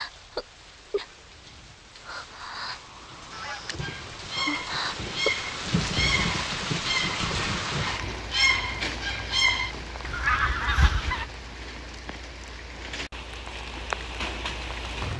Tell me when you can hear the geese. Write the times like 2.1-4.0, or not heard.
3.3-11.2.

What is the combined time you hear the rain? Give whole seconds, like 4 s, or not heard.
15 s.